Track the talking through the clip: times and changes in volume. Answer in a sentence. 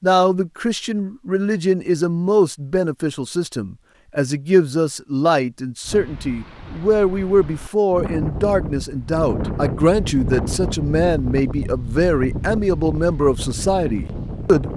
You can hear the talking from 0.0 to 14.7 s, at a steady volume.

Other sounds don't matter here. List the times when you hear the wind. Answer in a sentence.
You can hear the wind from 5.8 to 14.7 s.